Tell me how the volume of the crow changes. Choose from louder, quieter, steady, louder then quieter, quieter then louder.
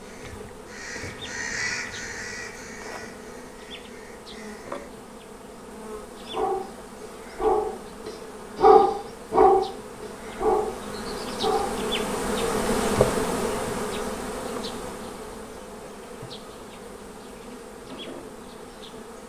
louder then quieter.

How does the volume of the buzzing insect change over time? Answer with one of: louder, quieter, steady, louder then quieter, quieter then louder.
louder then quieter.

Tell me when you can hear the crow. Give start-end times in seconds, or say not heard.
0.0-4.9.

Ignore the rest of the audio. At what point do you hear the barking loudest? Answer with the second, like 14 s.
9 s.